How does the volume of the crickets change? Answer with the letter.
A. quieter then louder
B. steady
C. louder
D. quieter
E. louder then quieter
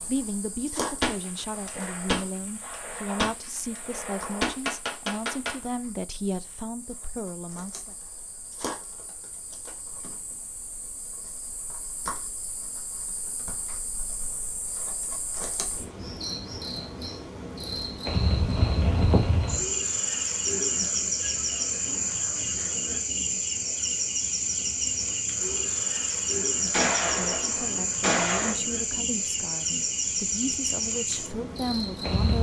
C.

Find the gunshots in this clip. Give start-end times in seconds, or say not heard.
1.0-5.5, 26.7-28.6.